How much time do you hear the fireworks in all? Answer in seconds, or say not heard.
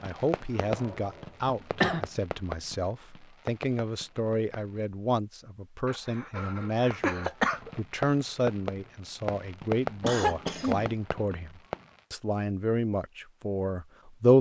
10 s.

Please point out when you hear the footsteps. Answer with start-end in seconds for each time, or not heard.
not heard.